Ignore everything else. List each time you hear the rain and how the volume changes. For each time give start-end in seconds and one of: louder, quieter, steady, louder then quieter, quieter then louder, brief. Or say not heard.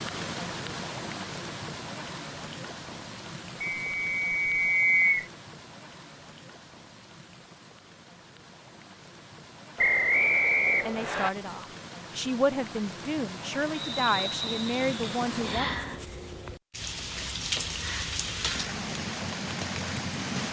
0.0-20.4 quieter then louder.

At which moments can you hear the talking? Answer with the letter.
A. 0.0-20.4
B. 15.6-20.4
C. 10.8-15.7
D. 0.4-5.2
C.